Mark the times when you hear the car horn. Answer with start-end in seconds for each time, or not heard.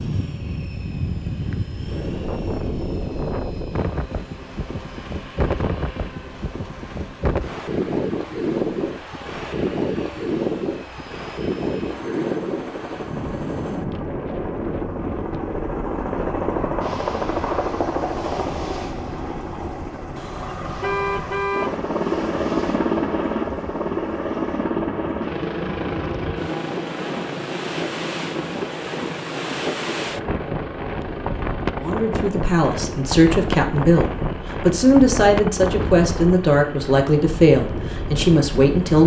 20.1-21.8.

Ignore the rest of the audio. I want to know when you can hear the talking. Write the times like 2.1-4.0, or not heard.
31.8-39.0.